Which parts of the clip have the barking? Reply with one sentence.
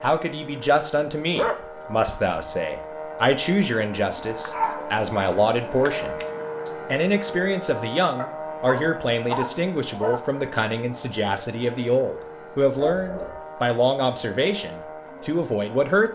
The barking can be heard from 1.3 to 2.1 s, from 4.5 to 6.2 s, from 8.2 to 10.2 s and from 12.8 to 13.4 s.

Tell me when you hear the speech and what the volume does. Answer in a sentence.
You can hear the speech from 0.0 to 16.1 s, at a steady volume.